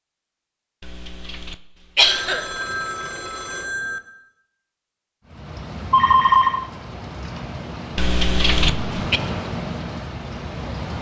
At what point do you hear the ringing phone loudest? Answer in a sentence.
The volume of the ringing phone peaks at 6 seconds.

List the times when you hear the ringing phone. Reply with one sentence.
The ringing phone can be heard from 2.0 to 4.0 s and from 5.9 to 6.7 s.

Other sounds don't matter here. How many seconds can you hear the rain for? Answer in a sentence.
The rain can be heard for 6 seconds in total.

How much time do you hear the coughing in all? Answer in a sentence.
The coughing can be heard for 3 seconds in total.